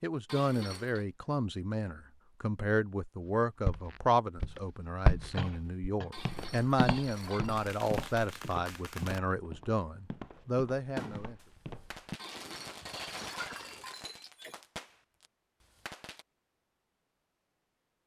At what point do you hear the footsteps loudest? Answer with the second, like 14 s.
5 s.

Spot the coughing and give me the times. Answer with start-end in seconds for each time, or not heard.
5.3-6.1, 13.2-14.6.